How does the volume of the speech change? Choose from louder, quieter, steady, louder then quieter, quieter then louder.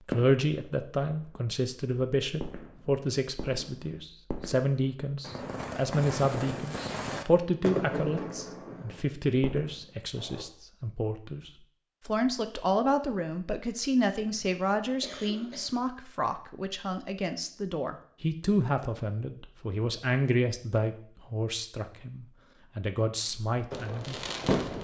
steady.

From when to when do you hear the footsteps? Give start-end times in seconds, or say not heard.
not heard.